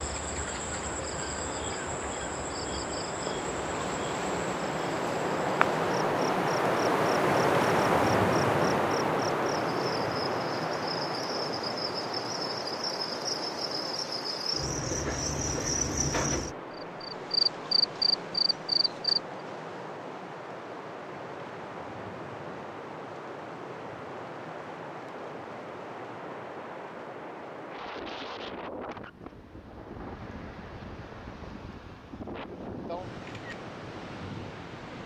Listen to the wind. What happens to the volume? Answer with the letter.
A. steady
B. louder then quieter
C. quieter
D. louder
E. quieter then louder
C.